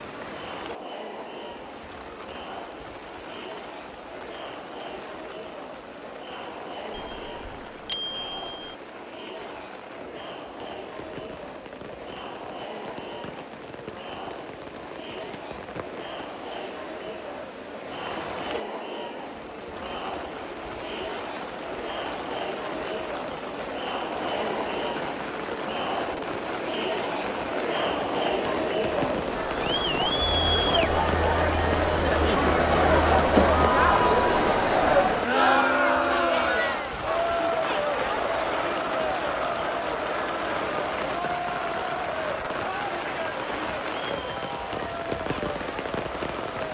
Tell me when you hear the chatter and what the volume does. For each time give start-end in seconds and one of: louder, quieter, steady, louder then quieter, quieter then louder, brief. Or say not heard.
0.0-46.7 louder then quieter.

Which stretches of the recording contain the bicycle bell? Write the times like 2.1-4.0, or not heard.
6.9-8.7.